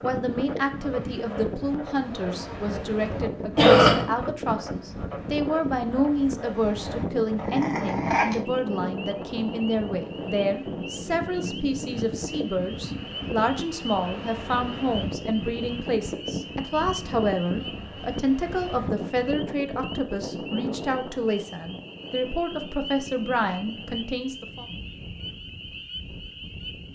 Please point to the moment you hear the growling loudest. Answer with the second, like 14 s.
8 s.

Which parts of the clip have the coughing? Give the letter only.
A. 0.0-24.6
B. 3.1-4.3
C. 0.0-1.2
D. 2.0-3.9
B.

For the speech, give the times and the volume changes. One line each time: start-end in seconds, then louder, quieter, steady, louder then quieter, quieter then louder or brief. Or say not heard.
0.0-24.6 steady.